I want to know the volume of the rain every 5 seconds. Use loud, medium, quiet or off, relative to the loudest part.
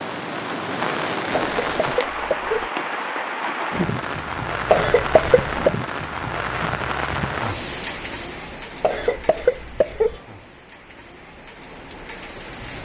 loud, loud, quiet.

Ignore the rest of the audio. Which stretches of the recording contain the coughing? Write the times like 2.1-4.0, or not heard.
1.4-2.7, 4.7-5.8, 8.8-10.2.